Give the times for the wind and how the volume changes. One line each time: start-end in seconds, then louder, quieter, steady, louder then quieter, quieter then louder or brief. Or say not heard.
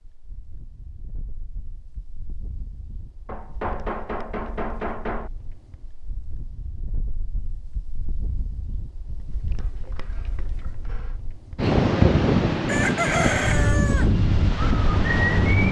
0.0-15.6 louder.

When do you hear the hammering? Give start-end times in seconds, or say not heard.
3.2-5.3, 9.6-11.2.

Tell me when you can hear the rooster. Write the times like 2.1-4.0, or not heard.
12.7-14.1.